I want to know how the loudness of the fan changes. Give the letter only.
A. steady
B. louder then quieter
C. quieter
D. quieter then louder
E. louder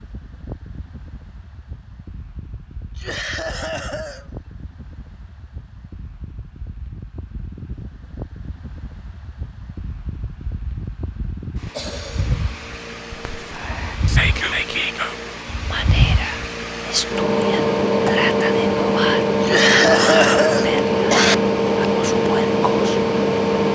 E.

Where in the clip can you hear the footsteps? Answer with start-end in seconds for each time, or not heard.
not heard.